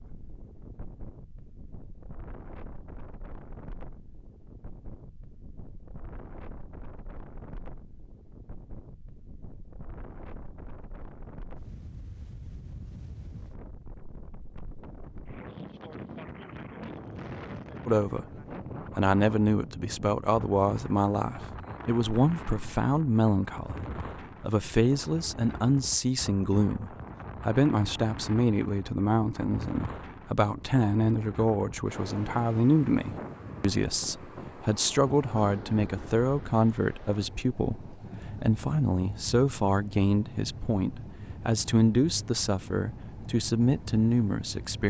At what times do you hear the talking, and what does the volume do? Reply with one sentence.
The talking can be heard from 17.9 to 44.8 s, at a steady volume.